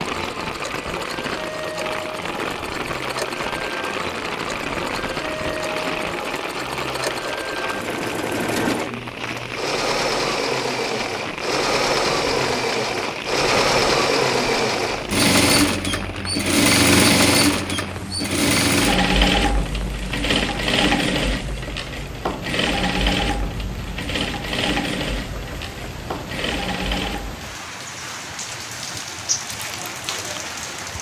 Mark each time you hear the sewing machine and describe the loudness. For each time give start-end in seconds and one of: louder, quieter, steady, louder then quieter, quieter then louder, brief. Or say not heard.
0.0-27.4 louder then quieter.